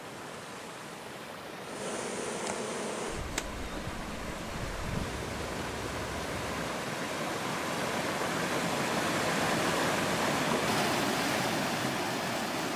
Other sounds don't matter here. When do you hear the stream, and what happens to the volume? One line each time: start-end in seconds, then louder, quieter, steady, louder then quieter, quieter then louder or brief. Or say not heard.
0.0-12.7 louder.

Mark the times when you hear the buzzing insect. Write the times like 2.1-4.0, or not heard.
1.6-6.7.